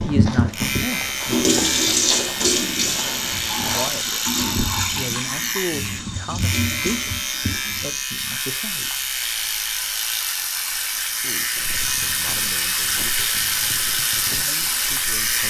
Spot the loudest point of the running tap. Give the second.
2 s.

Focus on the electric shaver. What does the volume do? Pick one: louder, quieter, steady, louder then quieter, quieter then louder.
steady.